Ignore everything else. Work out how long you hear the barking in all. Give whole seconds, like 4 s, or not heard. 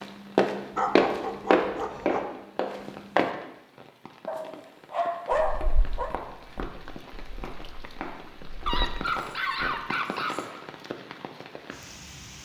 5 s.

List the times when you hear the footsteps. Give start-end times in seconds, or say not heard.
0.3-3.3, 5.3-9.8.